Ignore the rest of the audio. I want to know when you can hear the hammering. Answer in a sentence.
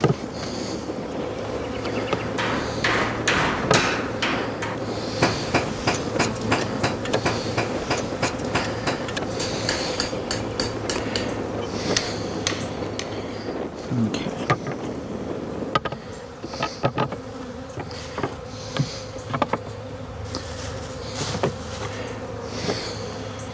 You can hear the hammering from 2.1 to 13.2 s.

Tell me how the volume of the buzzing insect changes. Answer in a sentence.
The volume of the buzzing insect stays about the same.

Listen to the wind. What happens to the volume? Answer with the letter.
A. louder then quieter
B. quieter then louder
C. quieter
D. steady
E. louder
D.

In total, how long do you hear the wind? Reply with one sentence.
You can hear the wind for 16 seconds altogether.